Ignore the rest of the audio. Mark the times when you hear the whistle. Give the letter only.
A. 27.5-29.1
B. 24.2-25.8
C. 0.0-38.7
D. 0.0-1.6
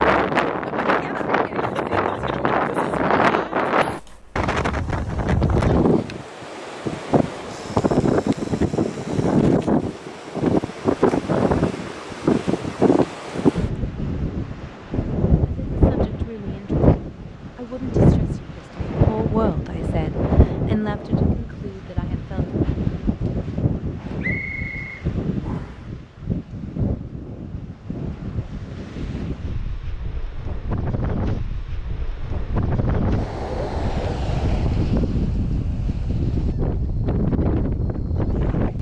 B.